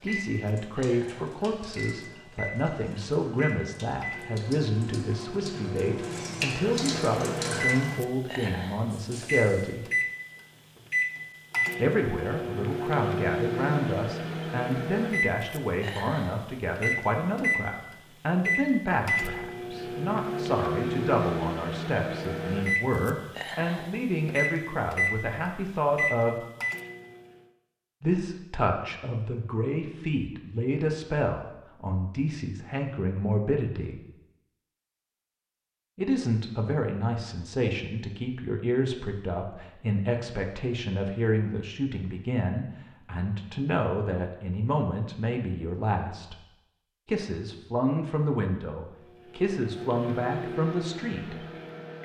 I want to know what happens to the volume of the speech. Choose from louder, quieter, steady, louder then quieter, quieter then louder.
steady.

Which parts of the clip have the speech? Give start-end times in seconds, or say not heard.
0.0-9.8, 11.8-26.4, 28.0-34.0, 36.0-46.4, 47.0-51.4.